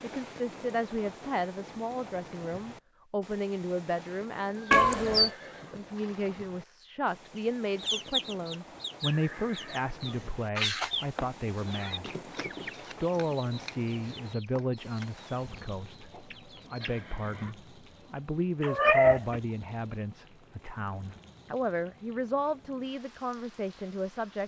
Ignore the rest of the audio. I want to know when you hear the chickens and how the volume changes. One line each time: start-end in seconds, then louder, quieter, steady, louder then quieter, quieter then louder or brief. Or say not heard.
7.3-17.0 quieter.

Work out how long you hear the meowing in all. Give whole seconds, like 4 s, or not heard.
2 s.